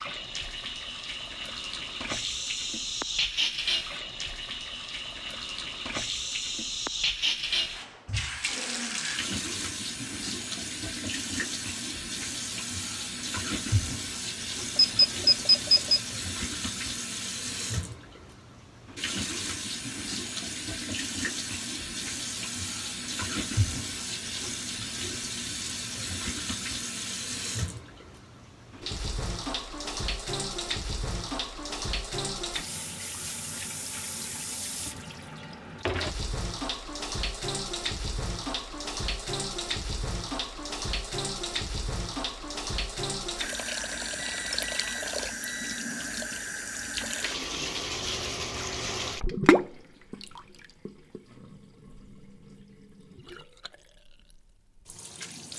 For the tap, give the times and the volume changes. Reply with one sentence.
The tap can be heard from 0.0 to 55.5 s, at a steady volume.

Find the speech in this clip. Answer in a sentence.
The speech can't be heard in this clip.